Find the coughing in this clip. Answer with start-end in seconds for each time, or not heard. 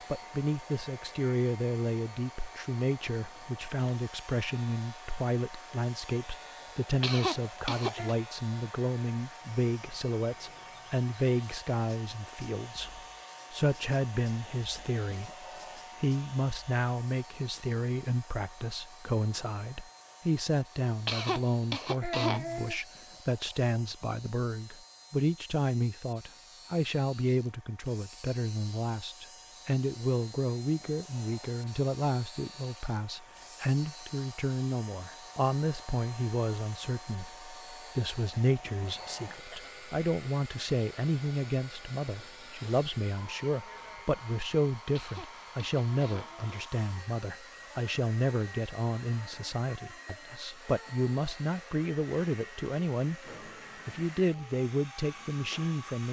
7.0-8.2, 21.1-22.8, 45.0-46.6.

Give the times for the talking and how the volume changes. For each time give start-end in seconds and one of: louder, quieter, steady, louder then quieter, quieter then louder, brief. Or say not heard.
0.1-53.2 steady
53.9-56.0 brief.